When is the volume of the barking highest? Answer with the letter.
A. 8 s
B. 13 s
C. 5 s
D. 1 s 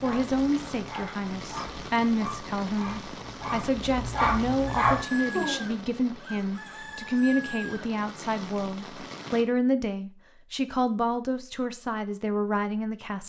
C.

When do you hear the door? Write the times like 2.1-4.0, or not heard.
not heard.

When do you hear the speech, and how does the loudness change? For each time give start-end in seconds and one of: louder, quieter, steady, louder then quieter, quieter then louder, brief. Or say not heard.
0.0-13.2 steady.